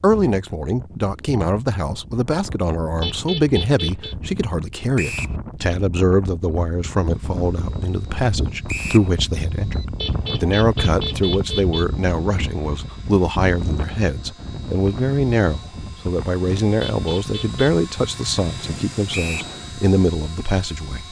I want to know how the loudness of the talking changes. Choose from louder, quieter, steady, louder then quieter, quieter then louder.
steady.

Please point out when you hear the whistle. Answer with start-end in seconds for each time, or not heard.
5.0-5.4, 8.7-9.1, 19.1-19.6.